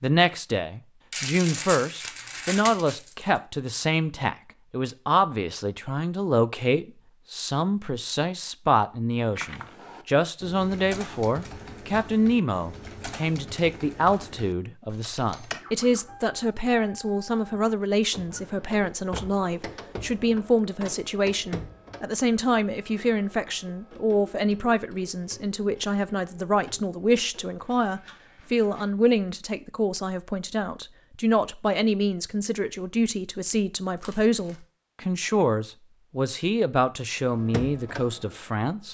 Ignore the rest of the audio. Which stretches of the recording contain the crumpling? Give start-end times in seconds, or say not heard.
1.1-3.2, 34.0-34.5.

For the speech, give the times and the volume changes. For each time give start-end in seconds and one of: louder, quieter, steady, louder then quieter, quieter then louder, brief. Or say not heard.
0.0-38.8 steady.